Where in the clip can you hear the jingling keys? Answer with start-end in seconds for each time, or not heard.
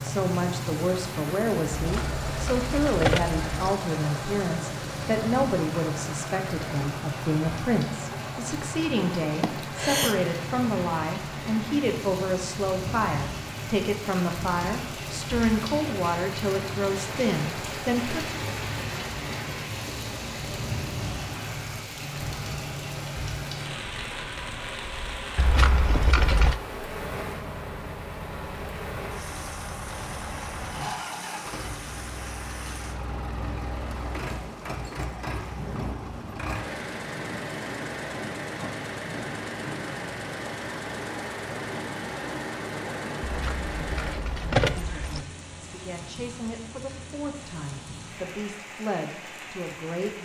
1.8-3.7, 25.4-26.6, 43.2-45.2.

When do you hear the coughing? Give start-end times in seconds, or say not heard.
9.4-10.2.